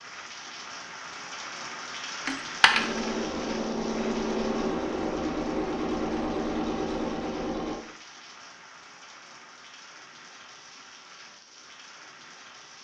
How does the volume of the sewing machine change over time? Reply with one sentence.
The volume of the sewing machine stays about the same.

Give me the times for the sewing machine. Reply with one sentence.
The sewing machine can be heard from 2.6 to 7.8 s.